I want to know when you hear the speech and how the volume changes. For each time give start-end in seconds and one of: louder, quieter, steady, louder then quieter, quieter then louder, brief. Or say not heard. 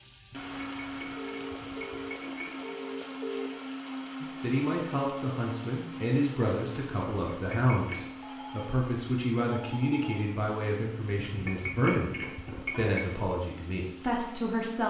4.2-14.8 steady.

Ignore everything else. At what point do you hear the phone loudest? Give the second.
3 s.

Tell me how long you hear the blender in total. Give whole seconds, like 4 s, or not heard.
14 s.